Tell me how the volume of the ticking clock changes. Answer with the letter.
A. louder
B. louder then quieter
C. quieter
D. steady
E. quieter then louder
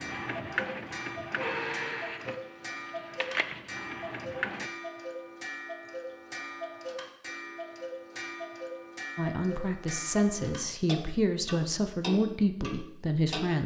D.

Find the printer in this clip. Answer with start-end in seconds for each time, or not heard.
0.0-4.7.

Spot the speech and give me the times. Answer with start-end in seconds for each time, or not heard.
9.2-13.6.